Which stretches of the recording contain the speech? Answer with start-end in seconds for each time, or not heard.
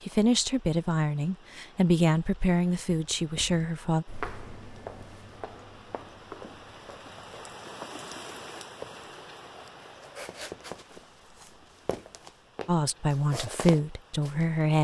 0.0-4.0, 12.7-14.7.